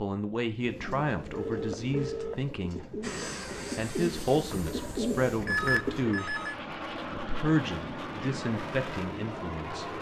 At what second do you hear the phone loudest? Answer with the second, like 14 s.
6 s.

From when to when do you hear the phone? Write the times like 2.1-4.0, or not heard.
1.3-2.9, 5.5-6.5.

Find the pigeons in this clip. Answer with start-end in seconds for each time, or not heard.
0.6-6.2.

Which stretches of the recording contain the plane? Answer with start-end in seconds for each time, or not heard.
3.0-9.9.